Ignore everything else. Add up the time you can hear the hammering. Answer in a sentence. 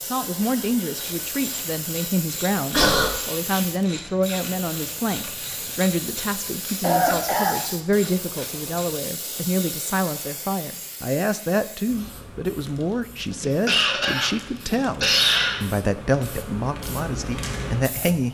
The hammering can't be heard in this clip.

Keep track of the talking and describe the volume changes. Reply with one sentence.
The volume of the talking stays about the same.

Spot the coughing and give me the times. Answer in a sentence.
You can hear the coughing from 2.7 to 3.1 s, from 6.8 to 7.5 s and from 13.3 to 15.6 s.